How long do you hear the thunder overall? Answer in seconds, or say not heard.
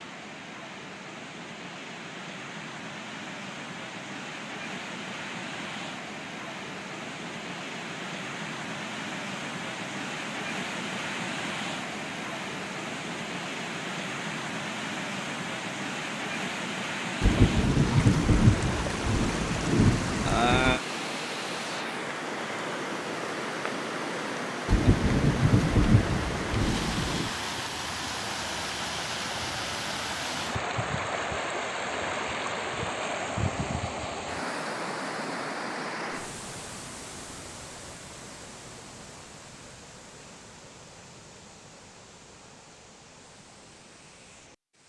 6 s.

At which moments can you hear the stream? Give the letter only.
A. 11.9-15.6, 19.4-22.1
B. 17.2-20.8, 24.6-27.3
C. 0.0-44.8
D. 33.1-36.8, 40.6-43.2
C.